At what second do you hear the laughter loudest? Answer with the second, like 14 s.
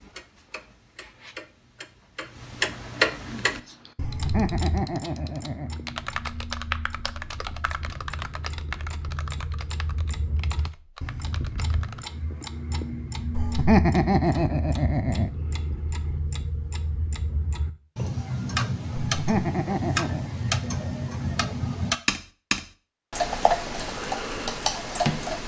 14 s.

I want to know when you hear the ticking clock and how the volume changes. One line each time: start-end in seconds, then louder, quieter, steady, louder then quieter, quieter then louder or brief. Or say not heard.
0.0-25.4 quieter then louder.